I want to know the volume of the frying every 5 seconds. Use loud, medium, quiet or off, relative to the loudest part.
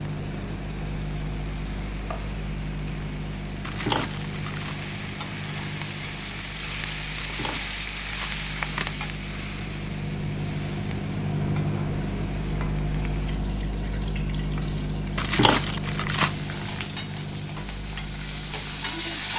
medium, loud, medium, loud.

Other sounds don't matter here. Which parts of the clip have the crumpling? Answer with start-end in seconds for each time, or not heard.
3.6-4.8, 7.2-8.8, 15.2-16.4.